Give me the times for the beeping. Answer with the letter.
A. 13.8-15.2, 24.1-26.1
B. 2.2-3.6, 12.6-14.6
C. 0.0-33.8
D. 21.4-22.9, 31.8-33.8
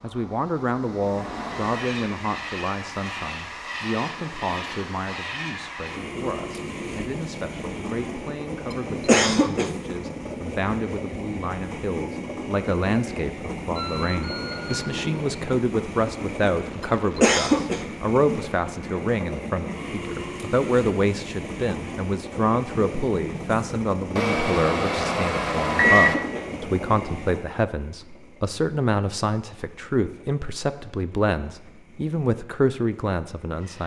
A.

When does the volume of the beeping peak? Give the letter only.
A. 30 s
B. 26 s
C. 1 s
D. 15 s
B.